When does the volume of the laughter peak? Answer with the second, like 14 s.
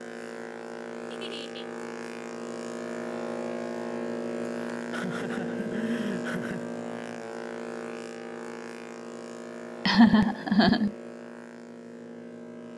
10 s.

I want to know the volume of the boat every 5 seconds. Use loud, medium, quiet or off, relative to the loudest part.
loud, loud, medium.